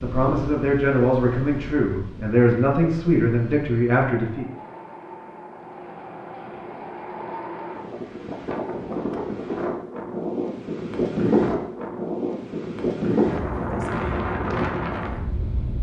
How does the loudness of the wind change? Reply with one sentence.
The loudness of the wind goes up.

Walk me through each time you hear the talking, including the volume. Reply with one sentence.
The talking can be heard from 0.0 to 4.5 s, at a steady volume.